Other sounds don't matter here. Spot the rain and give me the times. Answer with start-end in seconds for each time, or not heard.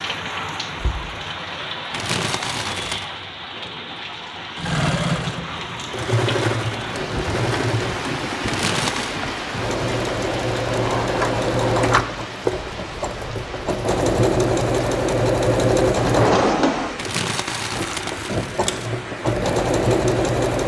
0.0-20.6.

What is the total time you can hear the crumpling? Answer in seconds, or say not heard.
4 s.